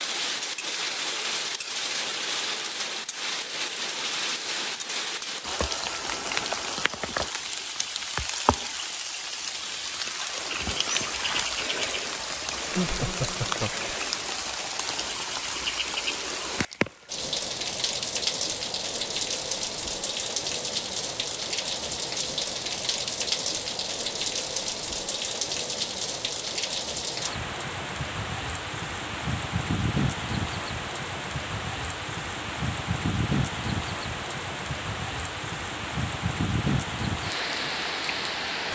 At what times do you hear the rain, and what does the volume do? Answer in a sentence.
You can hear the rain from 0.0 to 38.6 s, at a steady volume.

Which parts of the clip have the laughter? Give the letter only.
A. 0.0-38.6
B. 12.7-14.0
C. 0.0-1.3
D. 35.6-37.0
B.